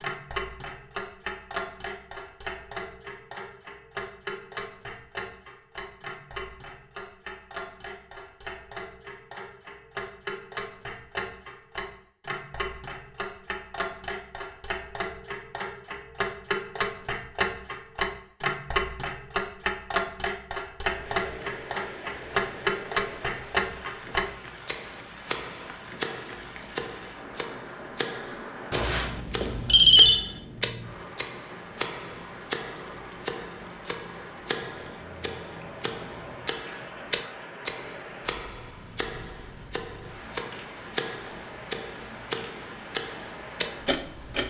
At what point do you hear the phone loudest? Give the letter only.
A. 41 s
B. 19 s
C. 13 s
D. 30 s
D.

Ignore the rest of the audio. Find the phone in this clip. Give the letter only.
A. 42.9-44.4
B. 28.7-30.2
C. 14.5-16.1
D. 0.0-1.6
B.